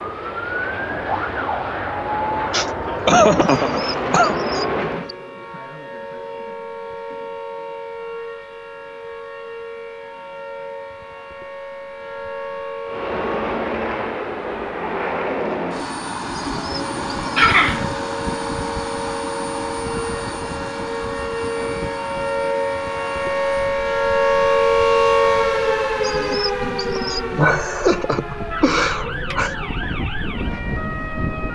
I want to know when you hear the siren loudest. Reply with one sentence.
The volume of the siren peaks at 25 seconds.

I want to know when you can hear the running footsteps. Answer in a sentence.
The running footsteps can't be heard in this clip.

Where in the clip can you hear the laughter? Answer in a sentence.
The laughter can be heard from 2.5 to 4.3 s, from 17.4 to 17.9 s and from 26.9 to 29.6 s.